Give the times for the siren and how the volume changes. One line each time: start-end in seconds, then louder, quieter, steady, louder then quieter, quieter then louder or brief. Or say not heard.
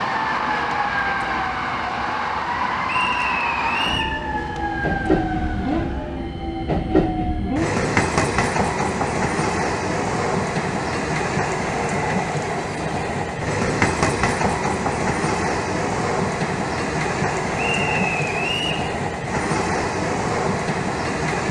0.0-6.2 steady.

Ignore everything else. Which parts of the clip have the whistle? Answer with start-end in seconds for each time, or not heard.
2.9-4.2, 17.6-18.9.